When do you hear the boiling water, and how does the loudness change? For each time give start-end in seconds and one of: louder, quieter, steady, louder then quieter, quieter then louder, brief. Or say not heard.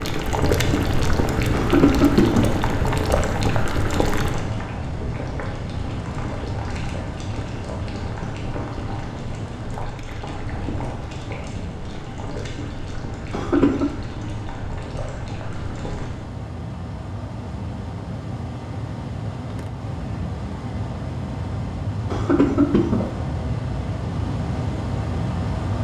0.0-16.2 quieter.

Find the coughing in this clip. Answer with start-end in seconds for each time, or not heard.
1.5-2.5, 13.3-13.9, 22.1-23.1.